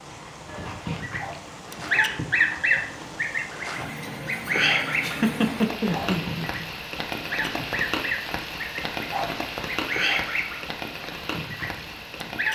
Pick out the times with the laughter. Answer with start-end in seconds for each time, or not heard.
5.0-6.7.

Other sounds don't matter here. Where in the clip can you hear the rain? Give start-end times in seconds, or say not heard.
0.0-12.5.